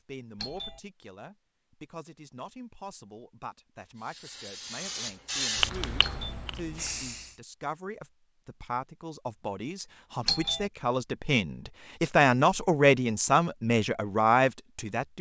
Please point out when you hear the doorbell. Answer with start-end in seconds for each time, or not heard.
0.4-0.8, 6.0-6.4, 10.2-10.7.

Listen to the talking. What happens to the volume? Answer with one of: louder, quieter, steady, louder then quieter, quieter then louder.
louder.